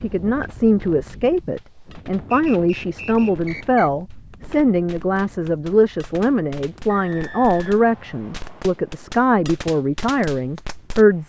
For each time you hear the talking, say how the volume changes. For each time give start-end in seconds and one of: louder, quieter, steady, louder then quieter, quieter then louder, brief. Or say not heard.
0.0-11.2 steady.